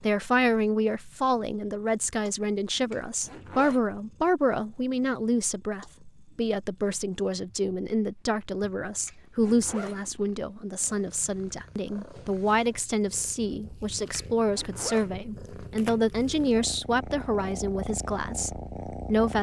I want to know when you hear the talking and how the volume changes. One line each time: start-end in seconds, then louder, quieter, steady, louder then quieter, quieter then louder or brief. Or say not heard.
0.0-19.3 steady.